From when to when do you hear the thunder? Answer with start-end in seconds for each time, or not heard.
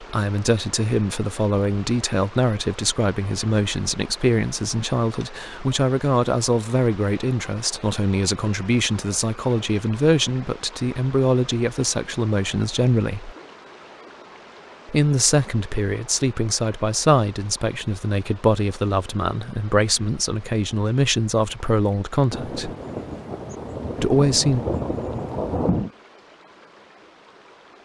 22.3-25.9.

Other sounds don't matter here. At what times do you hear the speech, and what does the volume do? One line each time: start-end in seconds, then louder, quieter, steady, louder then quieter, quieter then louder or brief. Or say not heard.
0.0-13.3 steady
14.8-22.7 steady
24.0-24.6 brief.